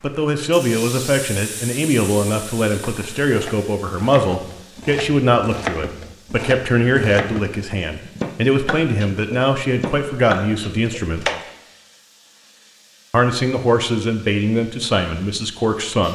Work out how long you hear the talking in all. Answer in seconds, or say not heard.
14 s.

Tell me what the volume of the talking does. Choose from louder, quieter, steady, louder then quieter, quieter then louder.
steady.